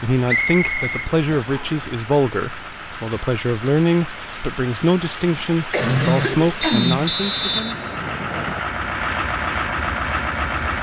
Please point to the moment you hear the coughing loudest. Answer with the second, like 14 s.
6 s.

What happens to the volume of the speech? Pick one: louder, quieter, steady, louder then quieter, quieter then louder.
steady.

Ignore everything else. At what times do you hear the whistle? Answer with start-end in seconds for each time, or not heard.
0.2-1.9, 6.6-8.6.